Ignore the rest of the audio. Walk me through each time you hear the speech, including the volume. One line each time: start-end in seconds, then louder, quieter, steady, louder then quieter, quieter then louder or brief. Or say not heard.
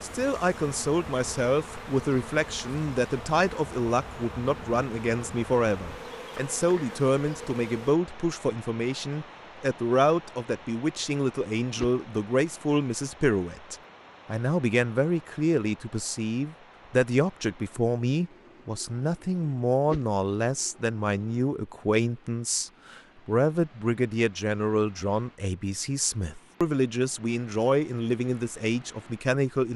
0.0-29.7 steady.